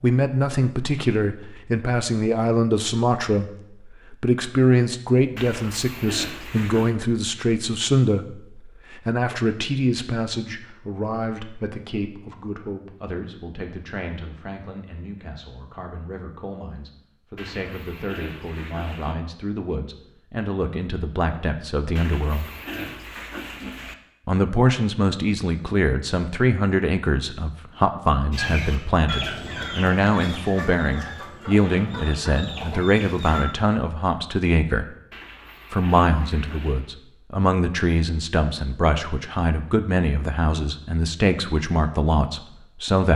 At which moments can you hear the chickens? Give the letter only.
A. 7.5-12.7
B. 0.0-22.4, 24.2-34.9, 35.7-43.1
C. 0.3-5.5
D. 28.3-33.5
D.